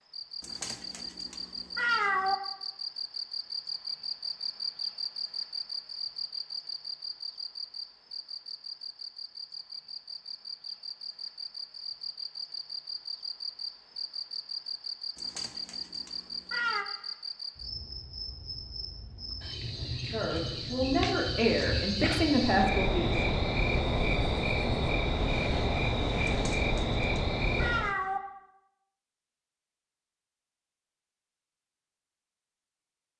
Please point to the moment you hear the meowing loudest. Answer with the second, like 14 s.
2 s.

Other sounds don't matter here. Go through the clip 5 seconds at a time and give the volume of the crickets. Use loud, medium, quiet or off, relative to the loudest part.
medium, medium, medium, medium, loud, loud, off.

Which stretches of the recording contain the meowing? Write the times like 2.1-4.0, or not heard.
0.4-2.4, 15.2-16.9, 26.2-28.2.